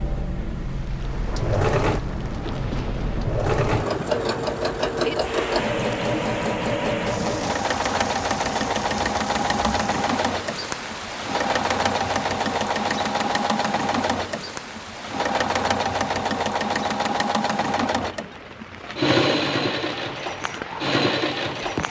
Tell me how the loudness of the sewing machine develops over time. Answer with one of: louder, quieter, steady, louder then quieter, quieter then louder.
steady.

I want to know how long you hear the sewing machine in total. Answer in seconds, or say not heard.
22 s.